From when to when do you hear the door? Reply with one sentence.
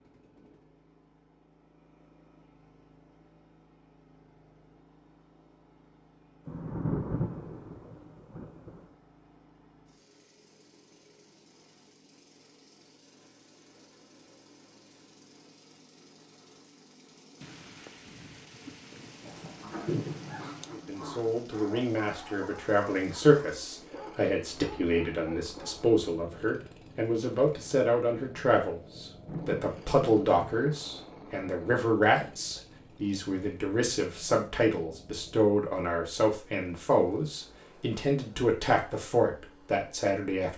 You can't hear the door here.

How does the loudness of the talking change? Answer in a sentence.
The volume of the talking stays about the same.